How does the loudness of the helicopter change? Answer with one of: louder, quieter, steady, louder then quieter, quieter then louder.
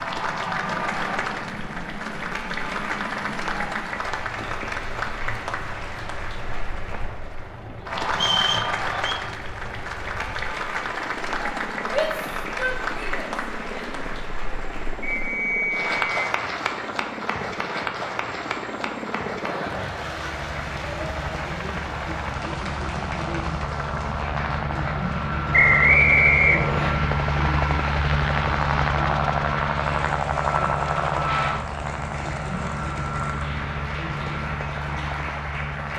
louder.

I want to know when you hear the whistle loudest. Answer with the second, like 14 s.
26 s.